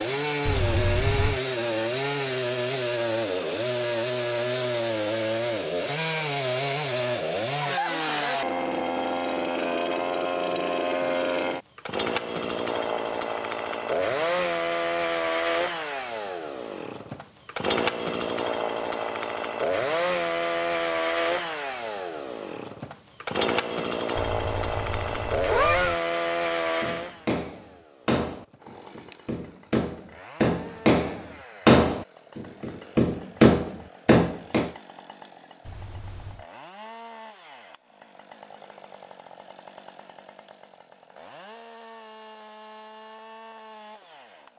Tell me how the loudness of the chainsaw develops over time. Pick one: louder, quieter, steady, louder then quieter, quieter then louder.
quieter.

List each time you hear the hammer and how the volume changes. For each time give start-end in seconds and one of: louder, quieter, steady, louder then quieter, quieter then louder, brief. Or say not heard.
26.8-34.7 louder.